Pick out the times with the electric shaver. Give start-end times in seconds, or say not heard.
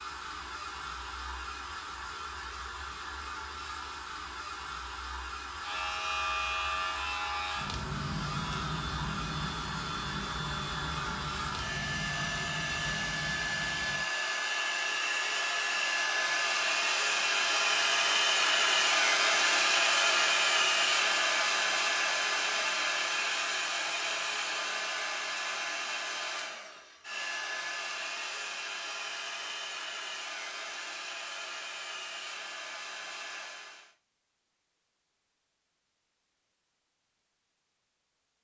5.6-14.1.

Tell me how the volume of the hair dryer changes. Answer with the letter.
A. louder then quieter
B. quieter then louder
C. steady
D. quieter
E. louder
A.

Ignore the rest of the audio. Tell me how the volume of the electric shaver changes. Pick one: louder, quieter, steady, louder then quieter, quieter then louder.
quieter.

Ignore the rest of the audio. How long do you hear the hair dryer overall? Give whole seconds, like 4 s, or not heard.
34 s.